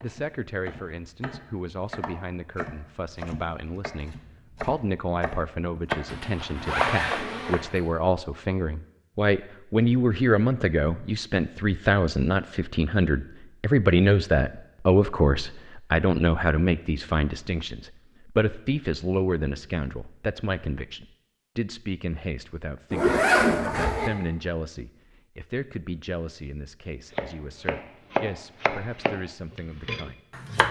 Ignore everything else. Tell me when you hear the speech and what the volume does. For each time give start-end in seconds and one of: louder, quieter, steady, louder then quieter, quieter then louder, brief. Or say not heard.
0.0-30.6 louder then quieter.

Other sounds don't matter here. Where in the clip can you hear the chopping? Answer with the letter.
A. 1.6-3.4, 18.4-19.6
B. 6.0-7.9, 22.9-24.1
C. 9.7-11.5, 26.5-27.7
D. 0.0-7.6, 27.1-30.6
D.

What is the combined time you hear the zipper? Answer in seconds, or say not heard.
3 s.